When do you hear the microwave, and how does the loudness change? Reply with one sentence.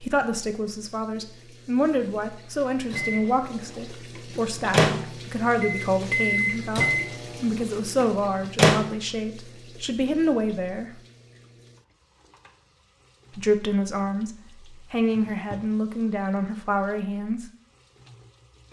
The microwave can be heard from 2.9 to 8.9 s, getting louder then quieter.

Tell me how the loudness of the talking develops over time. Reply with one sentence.
The loudness of the talking stays about the same.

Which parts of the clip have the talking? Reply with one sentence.
You can hear the talking from 0.0 to 10.9 s and from 13.3 to 17.4 s.